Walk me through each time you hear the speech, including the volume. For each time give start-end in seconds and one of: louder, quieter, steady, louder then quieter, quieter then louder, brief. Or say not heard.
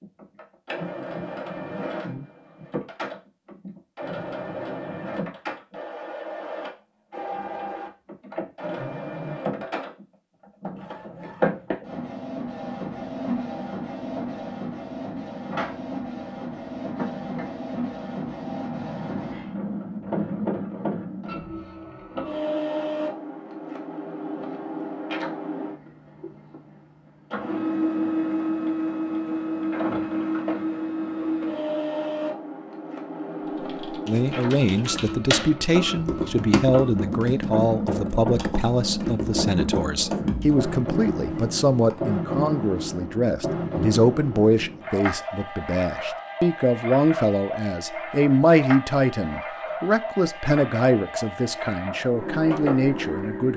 34.0-53.5 steady.